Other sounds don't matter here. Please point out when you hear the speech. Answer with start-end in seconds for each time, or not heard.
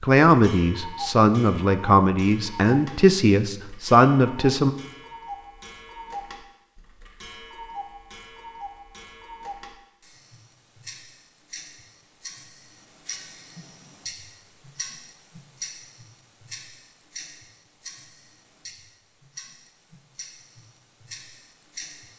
0.0-4.8.